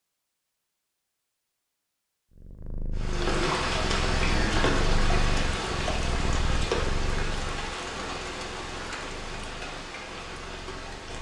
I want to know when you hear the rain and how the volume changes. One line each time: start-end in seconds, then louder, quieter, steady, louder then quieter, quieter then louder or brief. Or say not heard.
3.0-11.1 quieter.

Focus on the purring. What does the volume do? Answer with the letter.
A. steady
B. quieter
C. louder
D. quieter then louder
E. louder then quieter
B.